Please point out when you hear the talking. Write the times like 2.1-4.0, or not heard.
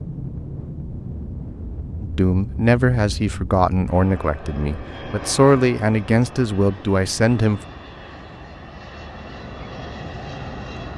2.0-7.6.